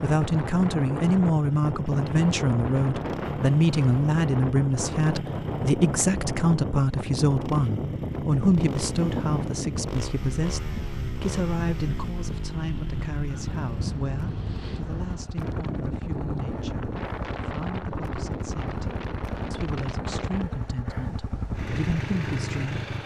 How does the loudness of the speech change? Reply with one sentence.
The loudness of the speech goes down.